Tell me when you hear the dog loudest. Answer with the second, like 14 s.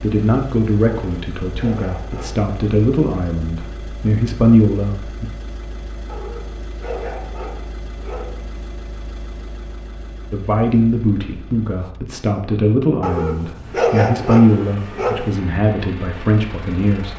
14 s.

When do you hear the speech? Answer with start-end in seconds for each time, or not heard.
0.0-5.2, 10.3-17.1.